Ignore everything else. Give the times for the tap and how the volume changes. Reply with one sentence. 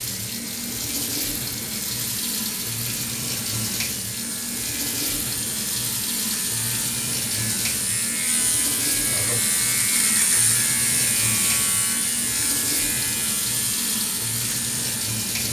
The tap can be heard from 0.0 to 15.4 s, at a steady volume.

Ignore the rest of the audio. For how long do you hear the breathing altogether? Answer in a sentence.
You can't hear the breathing here.